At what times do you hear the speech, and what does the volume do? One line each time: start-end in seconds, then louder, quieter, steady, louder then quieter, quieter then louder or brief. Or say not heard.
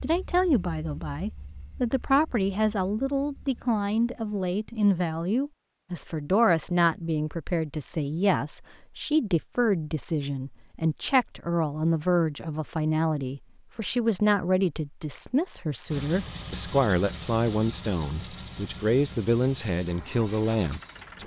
0.0-21.2 steady.